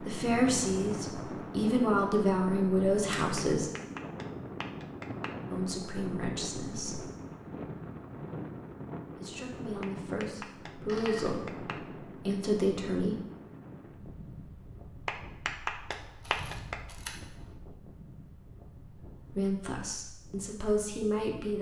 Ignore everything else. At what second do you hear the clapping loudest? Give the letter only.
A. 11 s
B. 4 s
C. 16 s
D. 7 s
C.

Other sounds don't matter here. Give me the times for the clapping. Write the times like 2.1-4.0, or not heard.
3.4-5.3, 9.8-11.8, 15.1-16.8.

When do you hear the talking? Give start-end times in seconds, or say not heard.
0.0-3.7, 5.5-7.0, 9.2-13.2, 19.2-21.5.